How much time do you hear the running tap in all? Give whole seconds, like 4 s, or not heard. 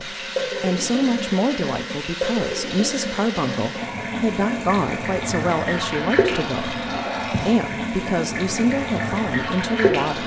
10 s.